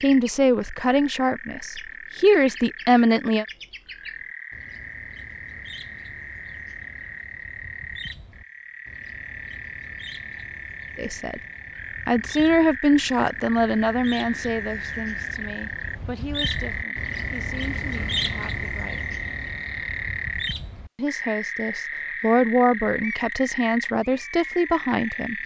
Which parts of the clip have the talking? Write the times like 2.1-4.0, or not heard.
0.0-3.5, 10.9-11.4, 12.1-19.1, 20.9-25.4.